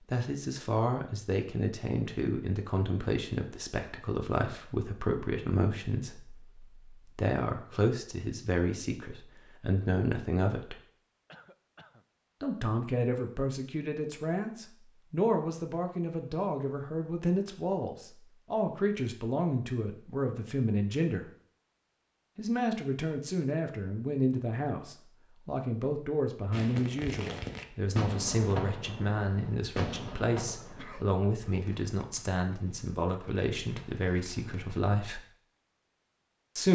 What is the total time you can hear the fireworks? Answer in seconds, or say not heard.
8 s.